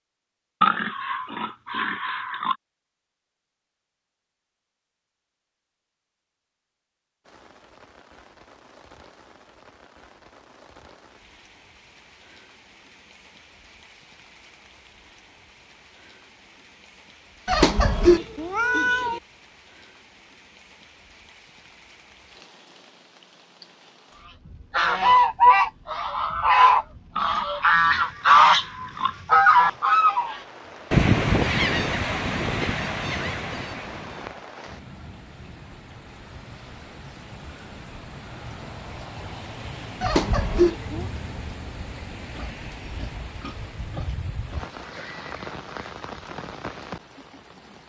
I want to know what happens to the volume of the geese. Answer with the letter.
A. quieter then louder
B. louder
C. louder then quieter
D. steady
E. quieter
E.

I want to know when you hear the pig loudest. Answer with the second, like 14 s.
1 s.